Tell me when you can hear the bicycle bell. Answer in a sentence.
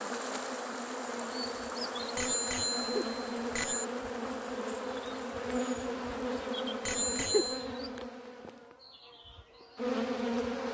You can hear the bicycle bell from 2.1 to 3.9 s and from 6.8 to 7.7 s.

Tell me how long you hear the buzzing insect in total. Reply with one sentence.
You can hear the buzzing insect for 11 seconds altogether.